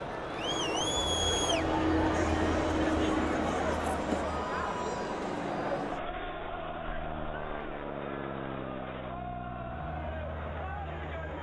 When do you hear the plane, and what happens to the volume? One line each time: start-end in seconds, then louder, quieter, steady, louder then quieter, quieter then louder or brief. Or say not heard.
0.0-11.3 quieter.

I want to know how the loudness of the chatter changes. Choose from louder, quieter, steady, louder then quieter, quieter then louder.
quieter.